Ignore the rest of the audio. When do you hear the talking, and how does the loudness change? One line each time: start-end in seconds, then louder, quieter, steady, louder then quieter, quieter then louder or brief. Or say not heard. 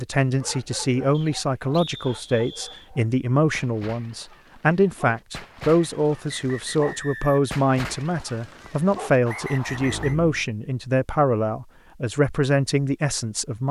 0.0-13.6 steady.